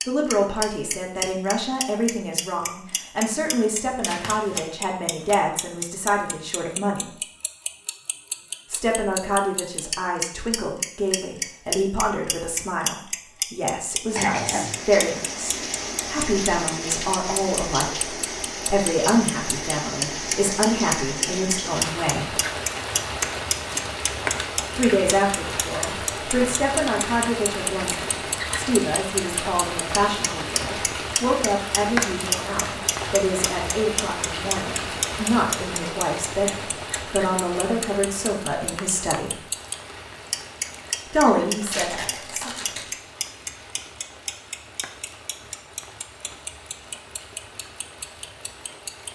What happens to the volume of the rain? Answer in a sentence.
The loudness of the rain goes down.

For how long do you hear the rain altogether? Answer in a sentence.
The rain can be heard for 35 seconds in total.